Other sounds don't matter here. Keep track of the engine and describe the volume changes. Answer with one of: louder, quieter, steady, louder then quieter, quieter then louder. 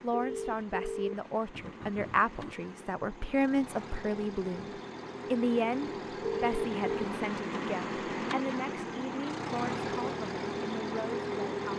louder.